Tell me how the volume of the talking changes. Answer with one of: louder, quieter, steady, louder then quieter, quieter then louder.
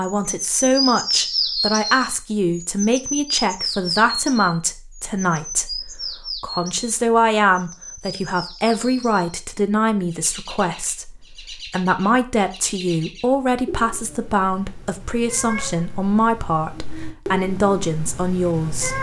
steady.